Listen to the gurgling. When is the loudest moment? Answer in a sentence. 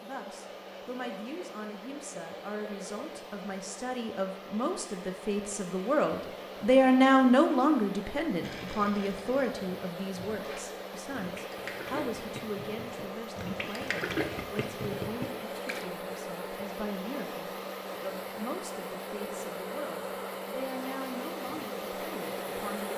The volume of the gurgling peaks at 14 seconds.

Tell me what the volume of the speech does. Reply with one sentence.
The volume of the speech goes up, then down.